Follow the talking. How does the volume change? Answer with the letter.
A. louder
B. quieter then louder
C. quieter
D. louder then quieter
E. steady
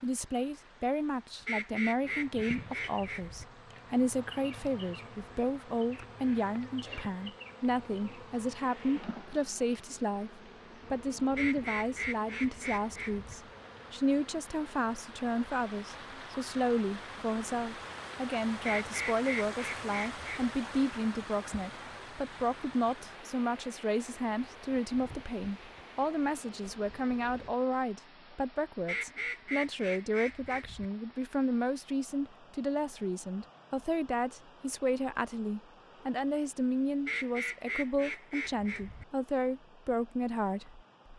E.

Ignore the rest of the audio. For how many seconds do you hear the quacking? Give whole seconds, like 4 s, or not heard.
10 s.